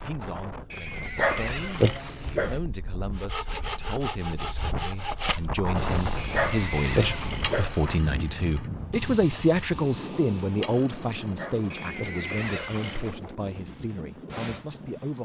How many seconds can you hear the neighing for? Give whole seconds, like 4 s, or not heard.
5 s.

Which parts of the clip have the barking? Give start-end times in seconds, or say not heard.
1.1-2.6, 6.3-7.8, 11.3-12.8.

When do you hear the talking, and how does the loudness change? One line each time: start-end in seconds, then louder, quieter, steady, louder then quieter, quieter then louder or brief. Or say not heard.
0.0-15.2 louder then quieter.